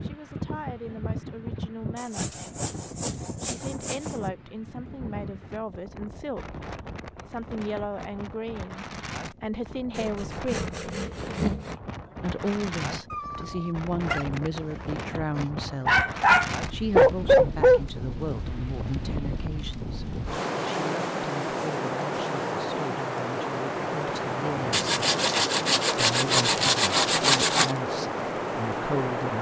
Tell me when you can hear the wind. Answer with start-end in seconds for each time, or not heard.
0.0-29.3.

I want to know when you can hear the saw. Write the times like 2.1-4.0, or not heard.
1.9-4.3, 9.9-11.8, 24.7-27.8.